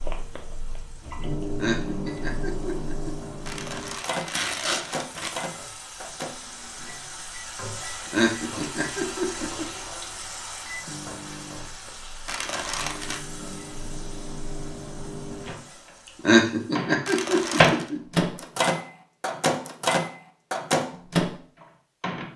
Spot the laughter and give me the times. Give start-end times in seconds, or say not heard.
1.4-3.1, 7.9-9.7, 16.1-18.0.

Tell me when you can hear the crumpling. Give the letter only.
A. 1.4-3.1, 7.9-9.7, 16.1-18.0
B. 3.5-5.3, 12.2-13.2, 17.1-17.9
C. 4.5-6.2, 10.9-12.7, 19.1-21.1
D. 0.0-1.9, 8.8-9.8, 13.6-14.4
B.